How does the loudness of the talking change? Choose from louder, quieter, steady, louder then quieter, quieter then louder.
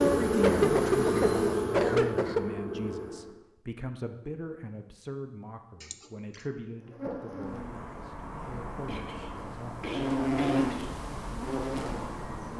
quieter.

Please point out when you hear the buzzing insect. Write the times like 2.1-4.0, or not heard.
0.0-3.4, 6.8-12.5.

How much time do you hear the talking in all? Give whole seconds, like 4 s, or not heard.
10 s.